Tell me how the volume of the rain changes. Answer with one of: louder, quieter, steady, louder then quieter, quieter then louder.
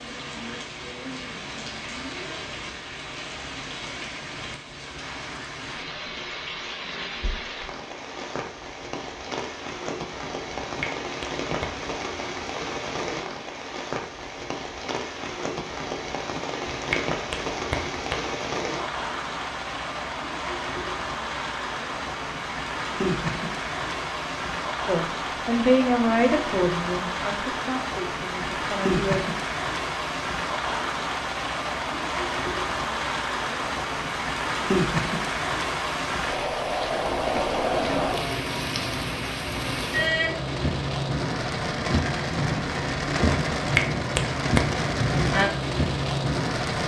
louder.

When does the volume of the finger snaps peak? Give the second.
44 s.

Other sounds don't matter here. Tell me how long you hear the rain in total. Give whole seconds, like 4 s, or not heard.
47 s.